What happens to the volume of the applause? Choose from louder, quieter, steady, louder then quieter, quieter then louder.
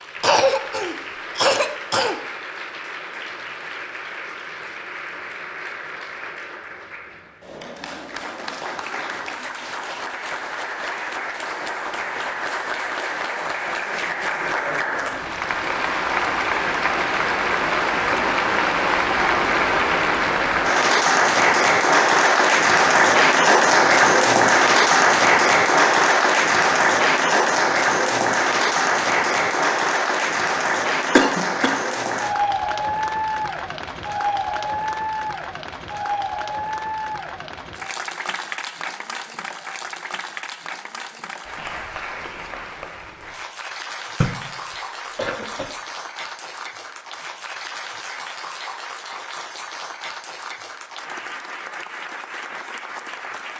louder then quieter.